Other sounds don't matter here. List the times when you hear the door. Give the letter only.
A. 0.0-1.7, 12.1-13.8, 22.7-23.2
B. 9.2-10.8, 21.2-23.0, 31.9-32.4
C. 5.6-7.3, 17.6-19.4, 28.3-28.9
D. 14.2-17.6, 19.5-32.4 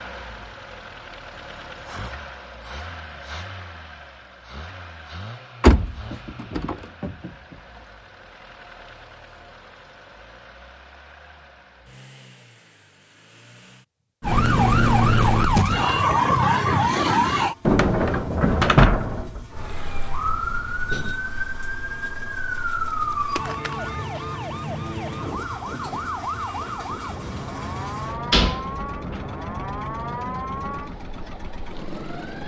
C.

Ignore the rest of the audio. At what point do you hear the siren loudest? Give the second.
15 s.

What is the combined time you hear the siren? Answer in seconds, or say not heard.
16 s.